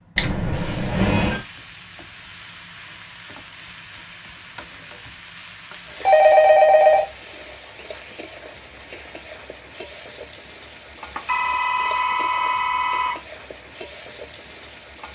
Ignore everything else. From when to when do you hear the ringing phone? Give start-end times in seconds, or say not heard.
0.1-1.4, 6.0-7.0, 11.2-13.2.